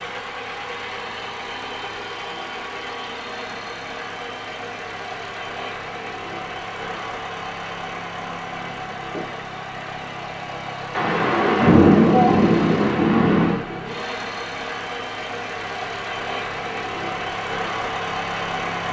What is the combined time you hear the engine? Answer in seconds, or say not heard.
19 s.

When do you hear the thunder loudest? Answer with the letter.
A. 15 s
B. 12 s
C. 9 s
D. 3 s
B.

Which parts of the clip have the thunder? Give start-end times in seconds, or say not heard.
10.9-13.7.